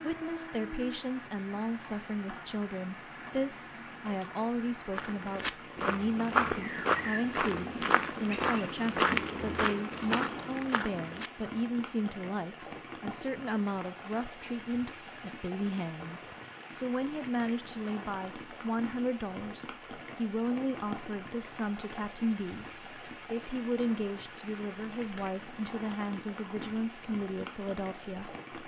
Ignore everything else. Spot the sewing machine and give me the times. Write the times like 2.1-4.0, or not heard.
not heard.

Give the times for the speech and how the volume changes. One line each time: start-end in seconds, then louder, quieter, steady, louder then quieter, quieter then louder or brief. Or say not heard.
0.0-28.4 steady.